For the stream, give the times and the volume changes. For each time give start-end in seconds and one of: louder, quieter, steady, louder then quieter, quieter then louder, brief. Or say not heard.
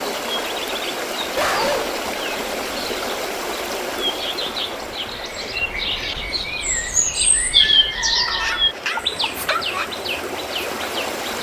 0.0-11.3 quieter then louder.